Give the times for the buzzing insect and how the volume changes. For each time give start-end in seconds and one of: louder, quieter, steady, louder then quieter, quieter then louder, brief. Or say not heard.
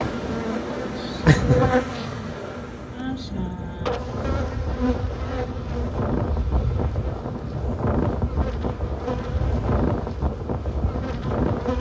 0.0-11.7 quieter.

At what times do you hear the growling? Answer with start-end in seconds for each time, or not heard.
1.2-2.4.